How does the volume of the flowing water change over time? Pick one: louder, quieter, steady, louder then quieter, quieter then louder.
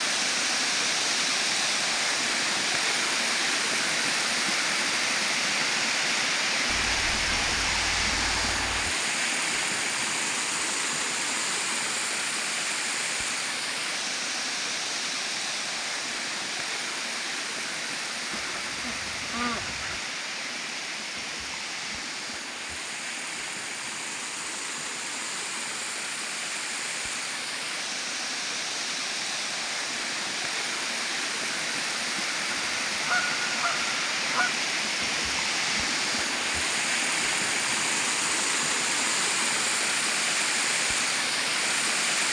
quieter then louder.